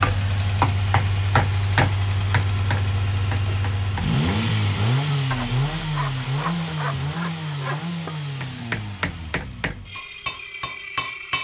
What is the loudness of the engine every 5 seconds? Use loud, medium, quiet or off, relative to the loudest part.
loud, loud, medium.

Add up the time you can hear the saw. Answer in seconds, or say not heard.
3 s.